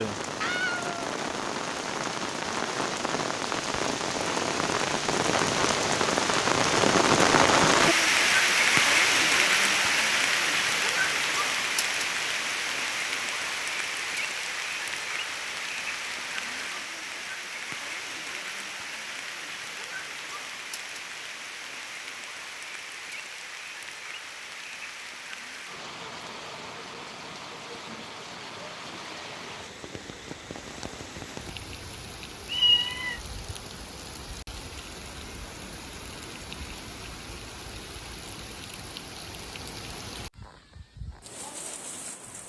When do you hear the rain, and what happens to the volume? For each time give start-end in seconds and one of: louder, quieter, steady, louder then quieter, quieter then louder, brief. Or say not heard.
0.0-42.4 quieter.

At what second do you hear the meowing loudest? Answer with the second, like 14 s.
33 s.